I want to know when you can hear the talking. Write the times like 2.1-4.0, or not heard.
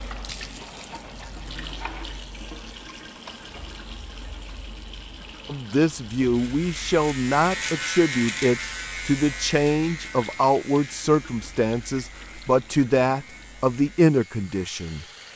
5.5-15.1.